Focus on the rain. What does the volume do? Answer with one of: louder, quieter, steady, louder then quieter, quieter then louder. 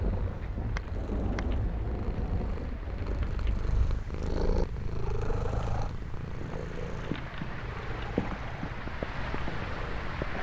quieter then louder.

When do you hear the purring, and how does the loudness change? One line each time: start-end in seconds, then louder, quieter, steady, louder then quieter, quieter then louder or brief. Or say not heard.
0.0-10.2 louder then quieter.